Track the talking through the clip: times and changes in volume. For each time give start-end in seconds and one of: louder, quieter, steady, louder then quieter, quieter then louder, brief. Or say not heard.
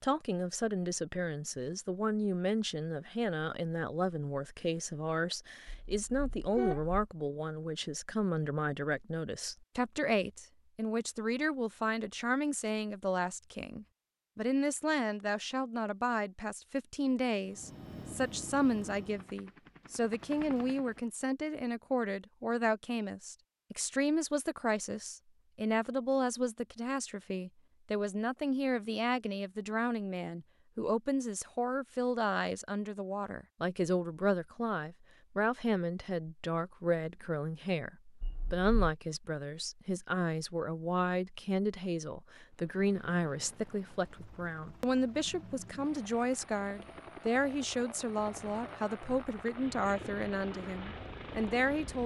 0.0-52.0 steady.